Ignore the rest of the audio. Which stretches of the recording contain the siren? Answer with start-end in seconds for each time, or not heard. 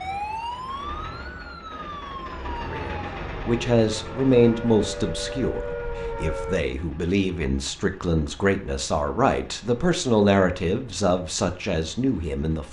0.0-6.6.